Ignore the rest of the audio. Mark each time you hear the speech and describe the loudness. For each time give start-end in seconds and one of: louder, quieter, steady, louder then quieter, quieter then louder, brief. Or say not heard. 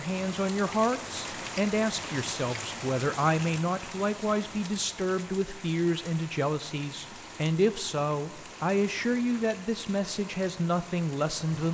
0.0-11.6 steady.